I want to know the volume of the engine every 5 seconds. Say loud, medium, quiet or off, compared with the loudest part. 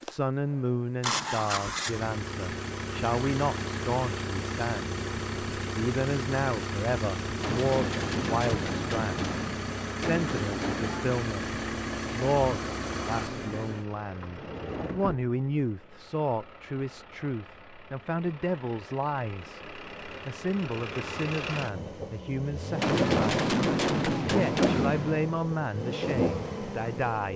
loud, loud, loud, quiet, loud, loud.